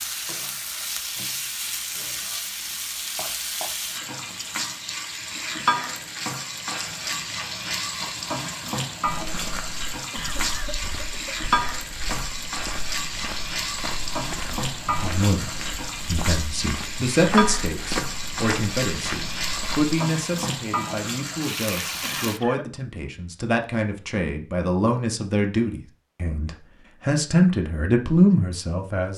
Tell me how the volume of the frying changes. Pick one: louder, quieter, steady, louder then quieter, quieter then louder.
steady.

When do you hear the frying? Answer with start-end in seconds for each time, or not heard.
0.0-22.4.